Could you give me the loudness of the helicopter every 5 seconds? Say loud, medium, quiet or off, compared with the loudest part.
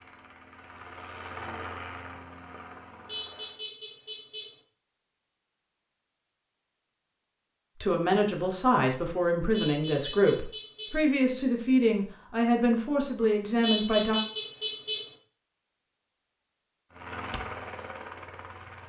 loud, off, off, loud.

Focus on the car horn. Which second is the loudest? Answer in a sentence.
The loudest moment of the car horn is at 14 seconds.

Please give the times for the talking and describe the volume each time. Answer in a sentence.
You can hear the talking from 7.8 to 14.2 s, at a steady volume.